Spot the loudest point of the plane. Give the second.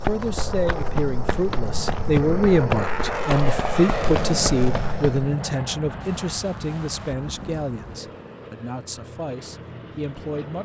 4 s.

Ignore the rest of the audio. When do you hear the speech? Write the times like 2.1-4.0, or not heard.
0.0-10.6.